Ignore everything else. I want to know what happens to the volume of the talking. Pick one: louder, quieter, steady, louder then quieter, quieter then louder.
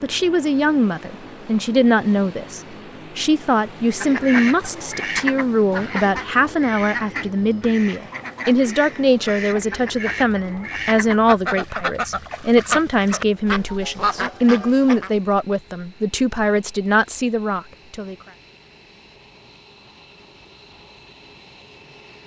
steady.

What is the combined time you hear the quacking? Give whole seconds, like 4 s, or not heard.
11 s.